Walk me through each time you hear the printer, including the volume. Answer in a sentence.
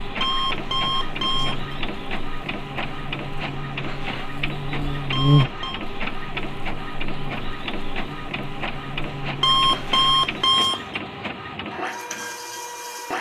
You can hear the printer from 0.0 to 13.1 s, at a steady volume.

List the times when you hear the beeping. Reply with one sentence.
The beeping can be heard from 0.2 to 1.8 s, from 5.1 to 5.8 s and from 9.4 to 11.0 s.